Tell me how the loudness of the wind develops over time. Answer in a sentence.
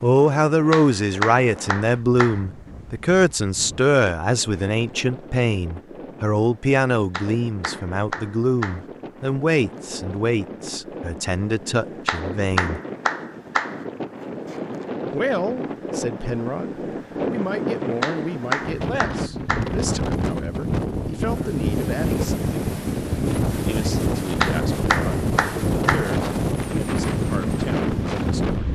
The loudness of the wind goes up.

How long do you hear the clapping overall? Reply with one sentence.
The clapping can be heard for 9 seconds in total.